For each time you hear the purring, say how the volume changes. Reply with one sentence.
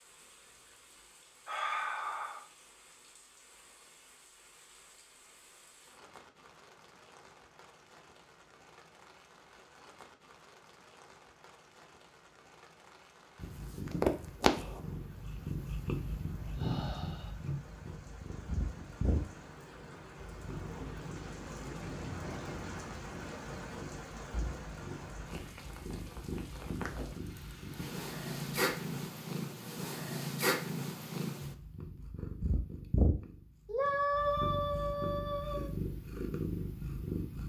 You can hear the purring from 13.4 to 37.4 s, getting quieter then louder.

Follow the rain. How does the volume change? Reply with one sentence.
The volume of the rain goes up.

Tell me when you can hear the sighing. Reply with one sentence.
You can hear the sighing from 1.4 to 2.5 s, from 16.6 to 17.3 s and from 33.6 to 35.7 s.